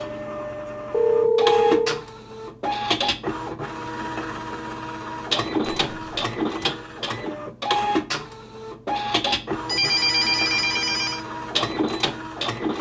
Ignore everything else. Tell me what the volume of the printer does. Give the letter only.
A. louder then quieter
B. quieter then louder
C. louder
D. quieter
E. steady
E.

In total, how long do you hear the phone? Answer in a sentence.
You can hear the phone for 3 seconds altogether.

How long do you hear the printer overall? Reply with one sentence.
The printer can be heard for 13 seconds in total.